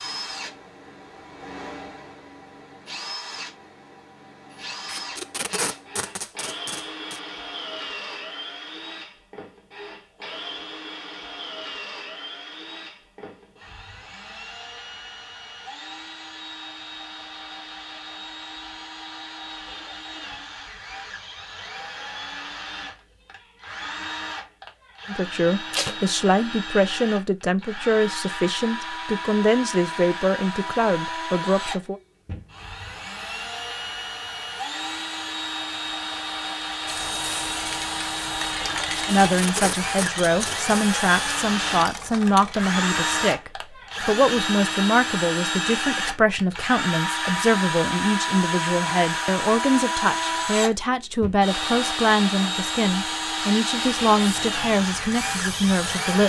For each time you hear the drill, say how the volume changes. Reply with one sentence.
The drill can be heard from 0.0 to 56.2 s, getting louder.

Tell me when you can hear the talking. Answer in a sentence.
The talking can be heard from 25.1 to 31.9 s and from 39.0 to 56.2 s.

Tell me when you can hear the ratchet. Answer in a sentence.
You can't hear the ratchet here.